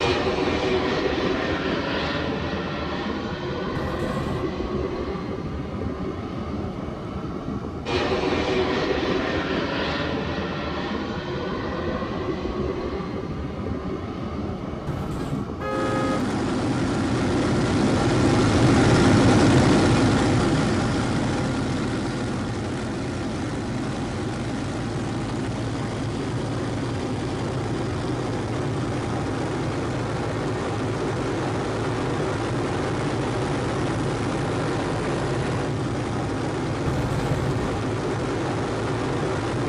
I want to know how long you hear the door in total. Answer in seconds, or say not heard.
2 s.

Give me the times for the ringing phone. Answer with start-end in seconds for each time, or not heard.
not heard.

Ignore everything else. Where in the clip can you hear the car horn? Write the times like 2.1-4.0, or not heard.
15.6-16.2.